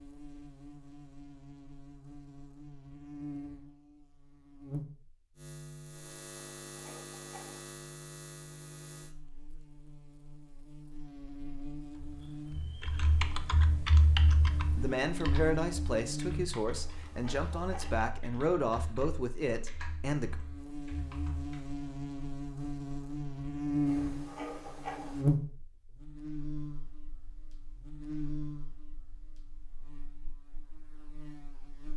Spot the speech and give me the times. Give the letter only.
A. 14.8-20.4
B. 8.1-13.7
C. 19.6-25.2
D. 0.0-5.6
A.